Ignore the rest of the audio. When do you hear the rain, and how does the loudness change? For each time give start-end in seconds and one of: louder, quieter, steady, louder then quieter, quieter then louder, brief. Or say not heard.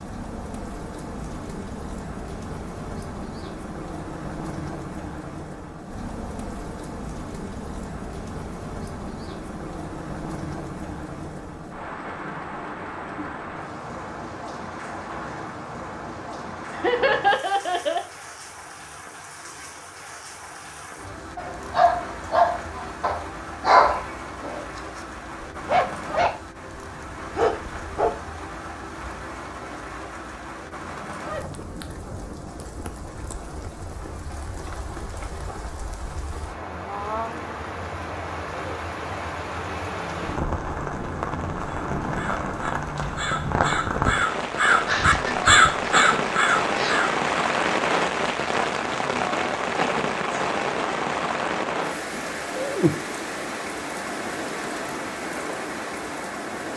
0.0-56.7 louder.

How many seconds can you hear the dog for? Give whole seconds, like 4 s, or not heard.
6 s.